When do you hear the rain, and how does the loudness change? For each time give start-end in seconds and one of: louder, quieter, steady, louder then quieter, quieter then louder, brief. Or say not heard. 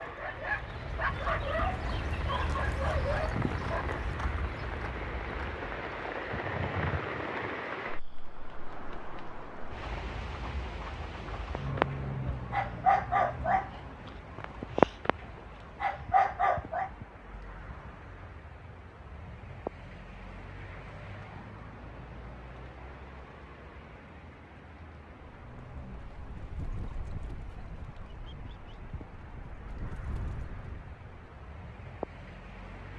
0.0-32.9 quieter.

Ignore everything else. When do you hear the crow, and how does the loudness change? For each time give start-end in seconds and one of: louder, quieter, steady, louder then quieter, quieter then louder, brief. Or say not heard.
not heard.